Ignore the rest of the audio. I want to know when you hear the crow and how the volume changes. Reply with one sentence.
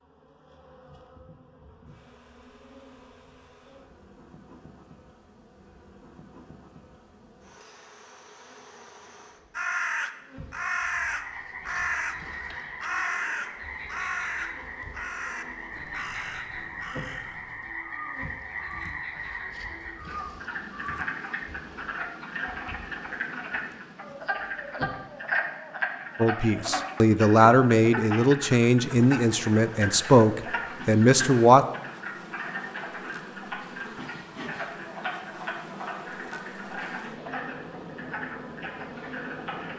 The crow can be heard from 9.6 to 21.1 s, getting quieter.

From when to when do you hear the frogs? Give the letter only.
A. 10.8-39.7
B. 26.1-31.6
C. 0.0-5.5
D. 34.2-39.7
A.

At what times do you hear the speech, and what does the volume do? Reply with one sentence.
The speech can be heard from 26.1 to 31.6 s, at a steady volume.